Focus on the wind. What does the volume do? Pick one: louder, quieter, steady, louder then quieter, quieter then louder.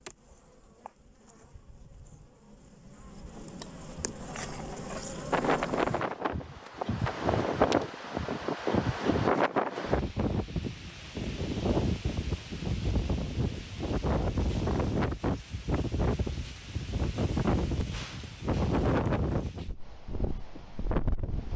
steady.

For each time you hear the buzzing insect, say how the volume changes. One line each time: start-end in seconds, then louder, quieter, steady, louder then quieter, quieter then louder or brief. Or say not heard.
0.0-9.3 louder.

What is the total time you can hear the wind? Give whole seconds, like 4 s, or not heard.
16 s.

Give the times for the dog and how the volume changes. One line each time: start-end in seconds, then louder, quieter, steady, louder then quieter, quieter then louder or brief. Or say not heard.
not heard.